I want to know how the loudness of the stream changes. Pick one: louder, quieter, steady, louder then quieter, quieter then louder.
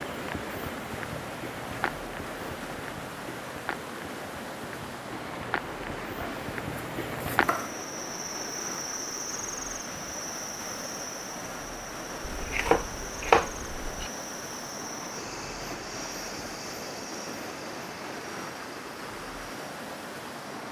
steady.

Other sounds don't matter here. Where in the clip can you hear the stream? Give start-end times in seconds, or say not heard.
0.0-20.6.